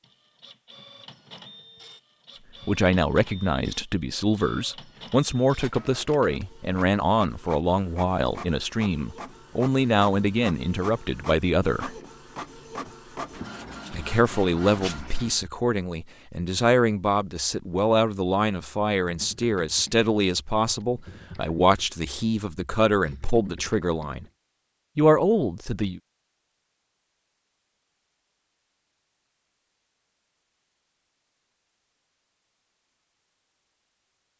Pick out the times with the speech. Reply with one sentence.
The speech can be heard from 2.6 to 11.9 s, from 13.9 to 24.2 s and from 24.9 to 26.0 s.